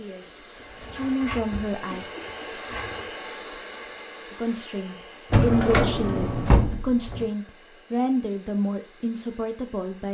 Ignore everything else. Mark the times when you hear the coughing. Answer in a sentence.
You can hear the coughing from 1.9 to 2.5 s.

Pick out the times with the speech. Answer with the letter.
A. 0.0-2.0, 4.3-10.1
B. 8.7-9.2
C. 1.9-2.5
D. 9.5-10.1
A.